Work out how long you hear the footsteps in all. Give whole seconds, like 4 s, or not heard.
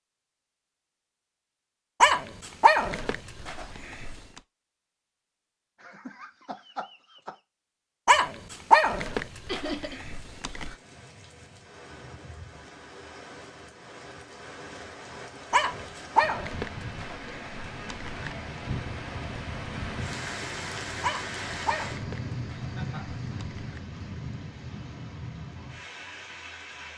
not heard.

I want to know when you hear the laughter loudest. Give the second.
10 s.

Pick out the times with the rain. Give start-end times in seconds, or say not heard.
9.9-26.9.